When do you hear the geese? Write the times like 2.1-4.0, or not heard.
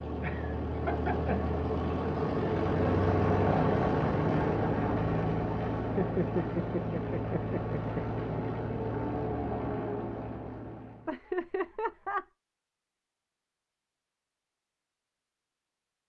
not heard.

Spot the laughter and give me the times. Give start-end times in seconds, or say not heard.
0.2-1.4, 5.8-8.2, 11.1-12.2.